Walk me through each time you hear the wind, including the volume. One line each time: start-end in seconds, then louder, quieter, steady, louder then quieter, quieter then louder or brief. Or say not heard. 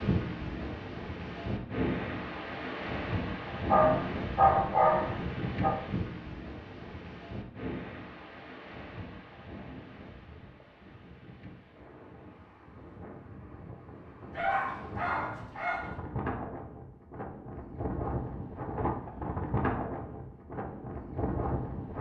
0.0-21.9 quieter then louder.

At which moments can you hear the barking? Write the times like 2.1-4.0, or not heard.
3.7-5.8, 14.3-16.0.